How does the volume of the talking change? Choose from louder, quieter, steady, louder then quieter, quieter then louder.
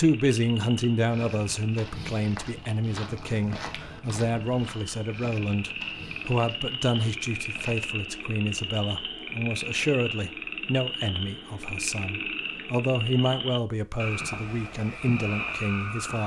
steady.